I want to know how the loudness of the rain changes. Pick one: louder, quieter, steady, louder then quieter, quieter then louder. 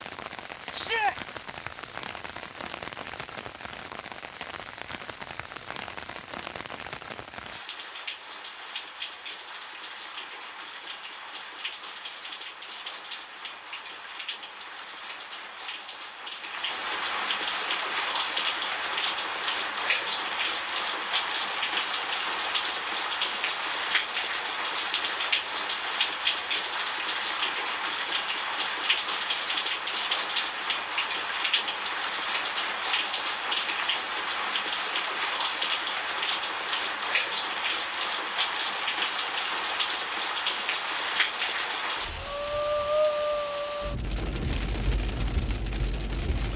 louder.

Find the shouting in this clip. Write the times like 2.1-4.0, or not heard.
0.7-1.1.